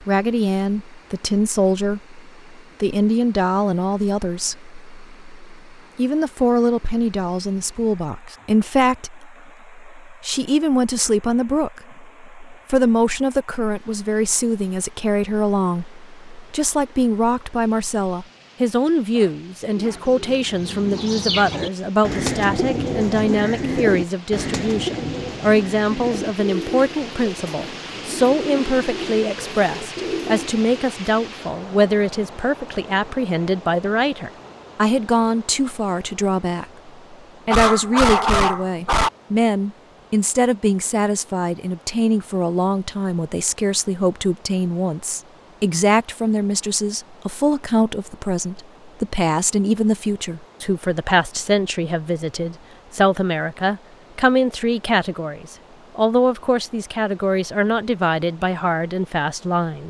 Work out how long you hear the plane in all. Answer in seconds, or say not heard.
not heard.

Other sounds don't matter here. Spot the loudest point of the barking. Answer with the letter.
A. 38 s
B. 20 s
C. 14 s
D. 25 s
A.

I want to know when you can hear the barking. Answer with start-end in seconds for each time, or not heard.
19.1-20.0, 37.5-39.1.